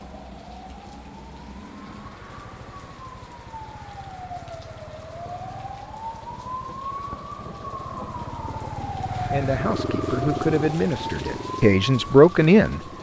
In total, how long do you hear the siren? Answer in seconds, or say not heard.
13 s.